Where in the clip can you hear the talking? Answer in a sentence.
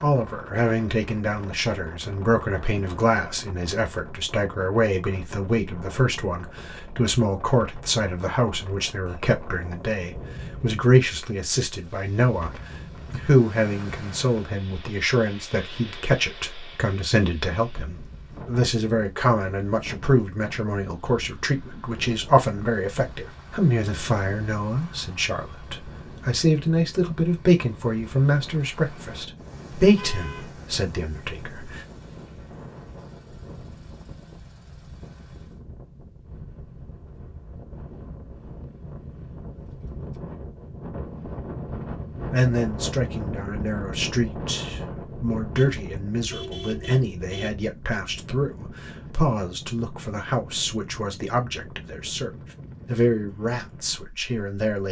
You can hear the talking from 0.0 to 31.8 s and from 42.3 to 54.8 s.